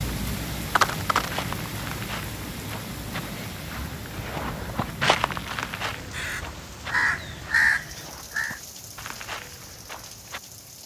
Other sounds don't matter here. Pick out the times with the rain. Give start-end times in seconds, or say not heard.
0.0-10.8.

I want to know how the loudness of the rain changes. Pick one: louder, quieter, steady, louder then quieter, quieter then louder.
quieter.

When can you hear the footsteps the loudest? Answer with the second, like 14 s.
5 s.